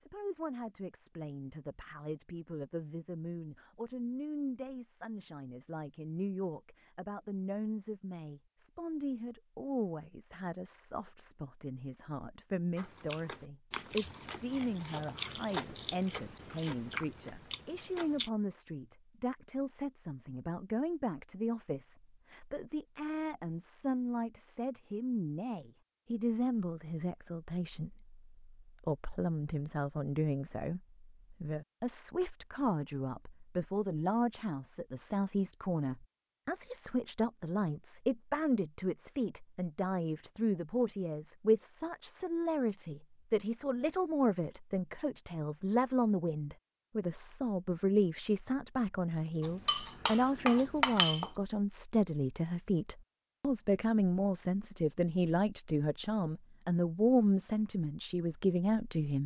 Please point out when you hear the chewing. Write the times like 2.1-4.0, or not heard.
12.8-18.3.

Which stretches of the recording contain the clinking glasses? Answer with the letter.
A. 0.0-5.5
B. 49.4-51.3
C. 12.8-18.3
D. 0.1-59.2
B.